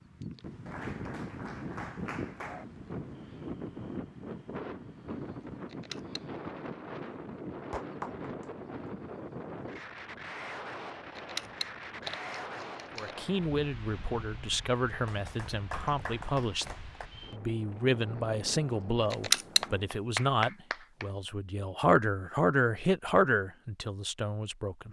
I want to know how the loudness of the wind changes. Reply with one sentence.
The loudness of the wind goes down.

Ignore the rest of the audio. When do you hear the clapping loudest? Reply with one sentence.
The volume of the clapping peaks at 20 seconds.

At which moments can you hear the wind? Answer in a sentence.
The wind can be heard from 0.0 to 20.0 s.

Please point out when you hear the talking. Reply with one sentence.
The talking can be heard from 12.9 to 24.8 s.